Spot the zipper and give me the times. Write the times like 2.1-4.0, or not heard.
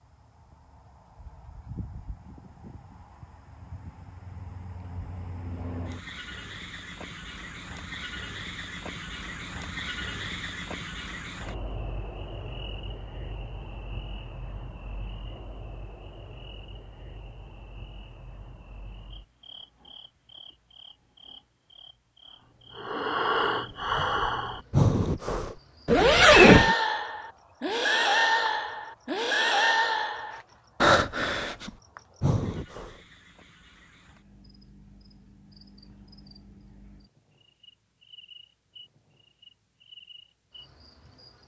25.9-26.8.